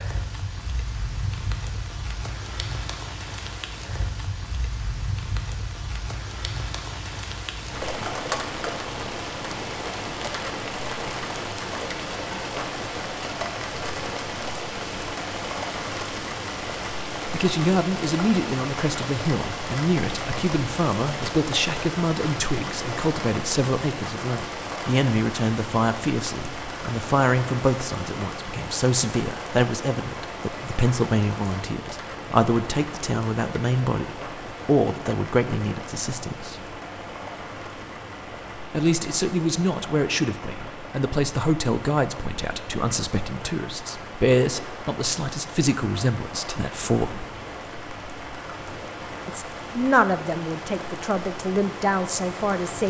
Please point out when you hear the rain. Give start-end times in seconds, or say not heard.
0.0-52.8.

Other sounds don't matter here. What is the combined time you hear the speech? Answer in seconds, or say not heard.
31 s.